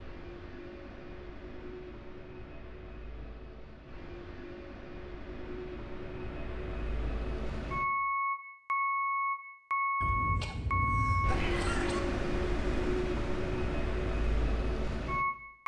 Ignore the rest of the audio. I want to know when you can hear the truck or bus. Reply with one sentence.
You can hear the truck or bus from 0.0 to 15.6 s.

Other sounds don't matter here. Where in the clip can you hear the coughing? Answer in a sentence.
The coughing can be heard from 10.0 to 12.0 s.